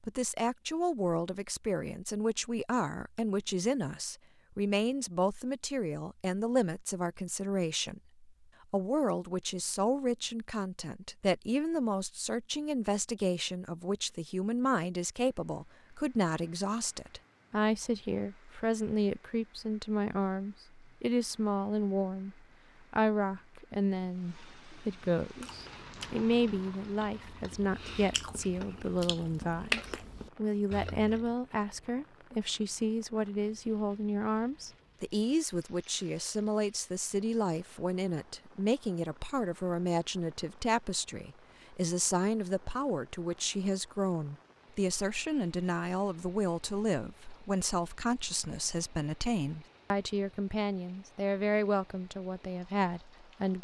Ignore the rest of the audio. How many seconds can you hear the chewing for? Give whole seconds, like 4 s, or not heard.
6 s.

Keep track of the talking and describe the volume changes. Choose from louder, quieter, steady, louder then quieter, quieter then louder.
steady.